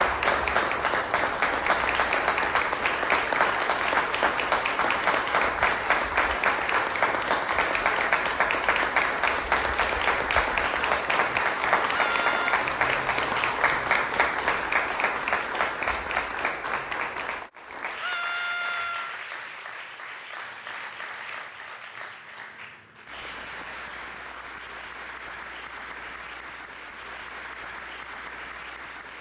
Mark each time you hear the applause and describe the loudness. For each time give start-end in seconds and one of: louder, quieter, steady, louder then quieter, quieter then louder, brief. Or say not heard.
0.0-29.1 quieter.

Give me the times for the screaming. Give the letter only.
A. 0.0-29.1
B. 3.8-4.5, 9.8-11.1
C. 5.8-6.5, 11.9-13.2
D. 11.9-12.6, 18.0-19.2
D.